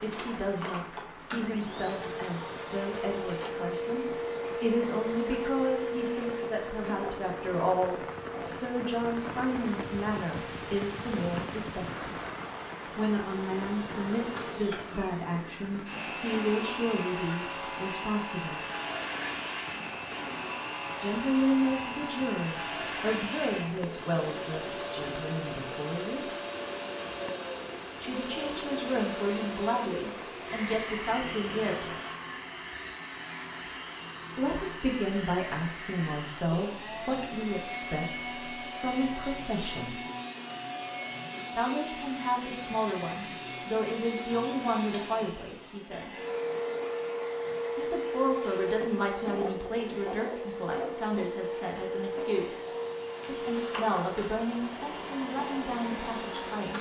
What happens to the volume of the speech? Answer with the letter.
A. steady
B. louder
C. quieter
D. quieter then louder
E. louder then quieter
A.